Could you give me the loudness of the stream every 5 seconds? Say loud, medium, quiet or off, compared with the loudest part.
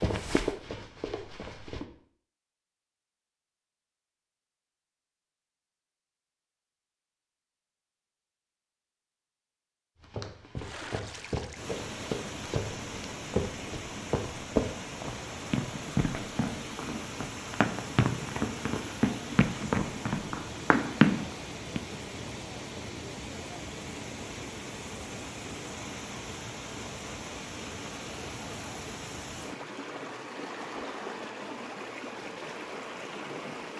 off, off, loud, loud, loud, loud, loud.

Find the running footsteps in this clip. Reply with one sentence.
The running footsteps can be heard from 0.0 to 1.9 s and from 10.0 to 21.8 s.